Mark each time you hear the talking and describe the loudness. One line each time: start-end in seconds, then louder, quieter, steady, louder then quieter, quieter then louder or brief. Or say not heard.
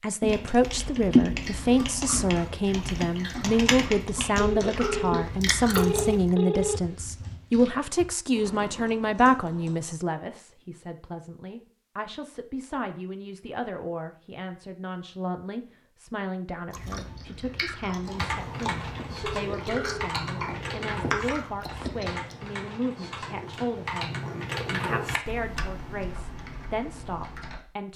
0.0-27.9 quieter.